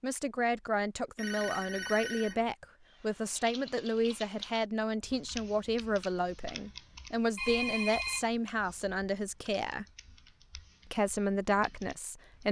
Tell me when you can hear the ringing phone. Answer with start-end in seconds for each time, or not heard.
1.1-2.5, 7.3-8.8.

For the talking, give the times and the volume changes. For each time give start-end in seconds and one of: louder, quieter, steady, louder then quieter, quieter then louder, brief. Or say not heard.
0.0-9.8 steady
10.8-12.4 brief.